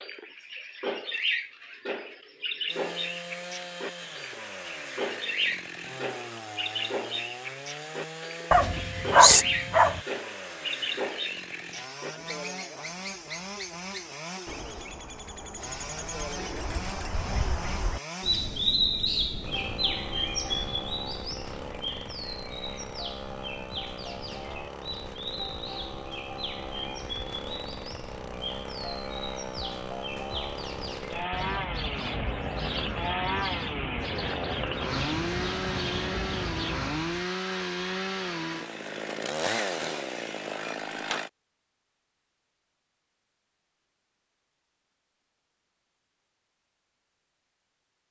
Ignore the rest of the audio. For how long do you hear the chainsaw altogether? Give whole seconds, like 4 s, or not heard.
39 s.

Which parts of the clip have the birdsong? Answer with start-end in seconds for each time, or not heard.
0.0-37.3.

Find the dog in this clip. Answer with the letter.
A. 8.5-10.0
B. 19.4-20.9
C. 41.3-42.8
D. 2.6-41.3
A.